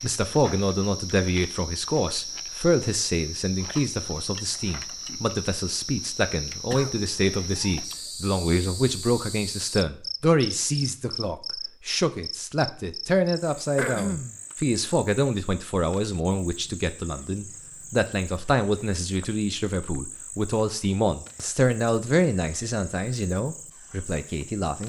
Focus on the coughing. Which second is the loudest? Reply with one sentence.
The volume of the coughing peaks at 14 seconds.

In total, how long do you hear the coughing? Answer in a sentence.
You can hear the coughing for 2 seconds altogether.